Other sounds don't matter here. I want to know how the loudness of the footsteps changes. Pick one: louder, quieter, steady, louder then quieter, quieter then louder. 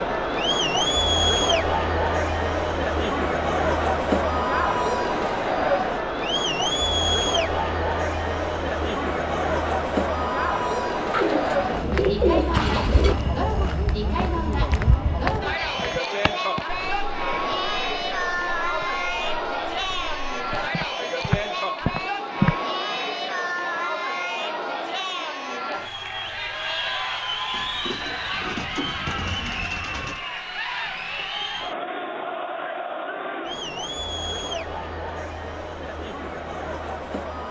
quieter then louder.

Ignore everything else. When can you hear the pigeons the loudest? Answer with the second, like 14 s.
12 s.